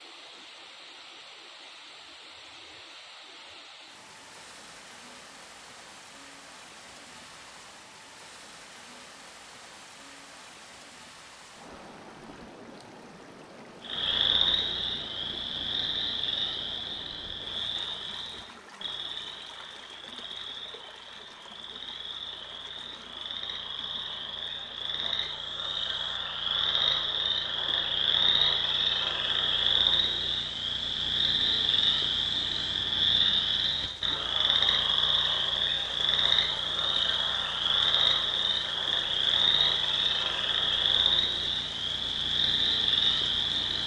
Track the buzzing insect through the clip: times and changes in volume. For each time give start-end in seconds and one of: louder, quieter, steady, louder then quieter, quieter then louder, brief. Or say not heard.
not heard.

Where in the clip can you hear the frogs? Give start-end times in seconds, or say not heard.
13.8-43.8.